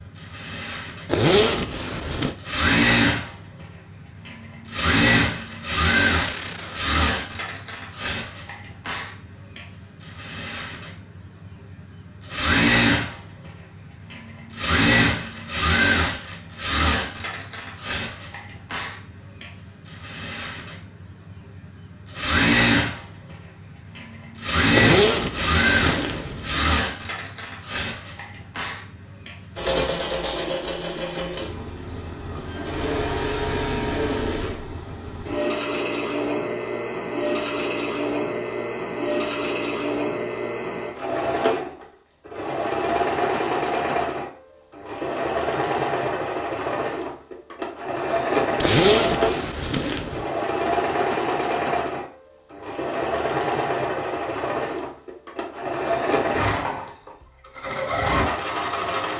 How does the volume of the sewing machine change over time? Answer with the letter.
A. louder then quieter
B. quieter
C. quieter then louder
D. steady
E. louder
D.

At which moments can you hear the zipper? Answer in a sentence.
The zipper can be heard from 1.1 to 2.4 s, from 24.7 to 26.6 s and from 48.6 to 50.2 s.